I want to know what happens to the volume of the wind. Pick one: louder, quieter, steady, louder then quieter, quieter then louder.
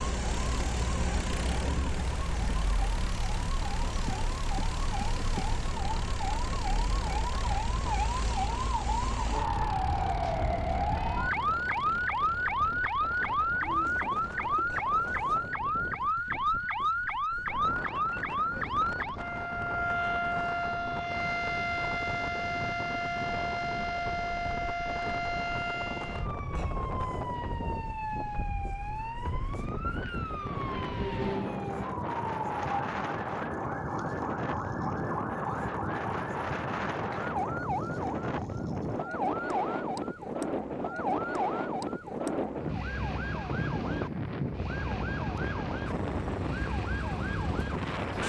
louder.